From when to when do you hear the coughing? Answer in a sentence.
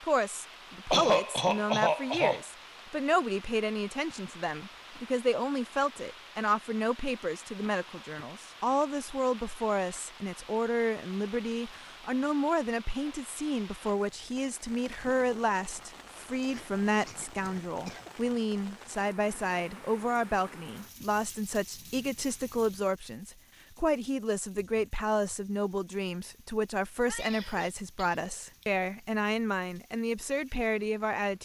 You can hear the coughing from 0.9 to 2.5 s, from 16.4 to 18.1 s and from 27.1 to 28.2 s.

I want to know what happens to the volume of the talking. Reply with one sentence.
The volume of the talking stays about the same.